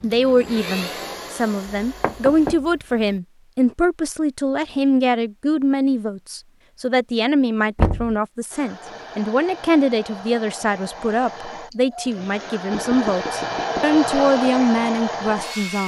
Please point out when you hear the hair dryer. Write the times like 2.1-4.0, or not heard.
0.0-2.5, 8.5-15.8.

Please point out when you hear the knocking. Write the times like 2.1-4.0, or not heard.
1.8-2.7, 7.8-8.2, 12.7-13.9.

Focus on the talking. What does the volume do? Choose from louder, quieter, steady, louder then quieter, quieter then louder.
steady.